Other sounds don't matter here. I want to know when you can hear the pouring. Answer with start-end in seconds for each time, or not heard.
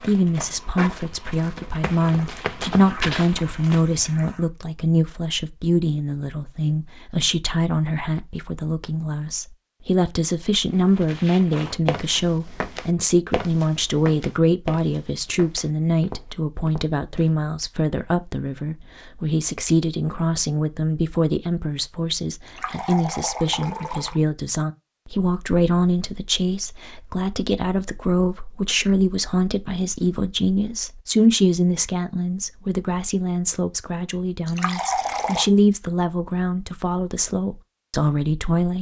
2.8-4.5, 22.4-24.2, 34.5-35.5.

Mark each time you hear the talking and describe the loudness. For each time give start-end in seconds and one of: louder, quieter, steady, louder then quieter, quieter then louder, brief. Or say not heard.
0.0-38.7 steady.